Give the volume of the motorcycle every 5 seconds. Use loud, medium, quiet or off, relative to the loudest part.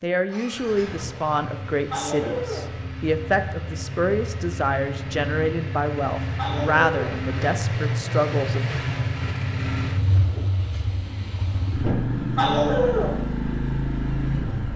medium, loud, loud.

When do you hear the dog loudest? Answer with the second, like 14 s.
13 s.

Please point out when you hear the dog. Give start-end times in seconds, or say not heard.
1.9-2.7, 6.3-7.2, 12.3-13.2.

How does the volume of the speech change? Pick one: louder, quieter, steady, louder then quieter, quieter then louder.
steady.